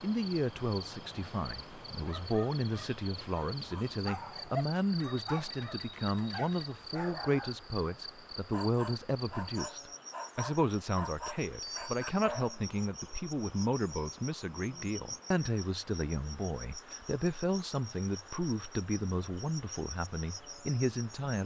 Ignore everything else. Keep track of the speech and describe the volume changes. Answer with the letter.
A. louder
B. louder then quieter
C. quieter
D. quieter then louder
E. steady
E.